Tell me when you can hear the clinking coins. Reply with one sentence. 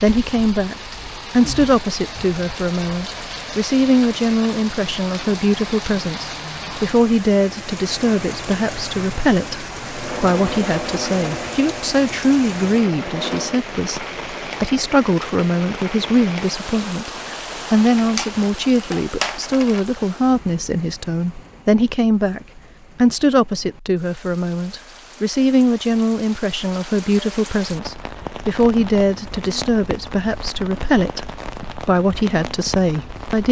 You can hear the clinking coins from 17.9 to 19.8 s.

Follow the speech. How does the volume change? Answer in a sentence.
The loudness of the speech stays about the same.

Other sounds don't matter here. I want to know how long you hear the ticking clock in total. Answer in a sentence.
The ticking clock can't be heard in this clip.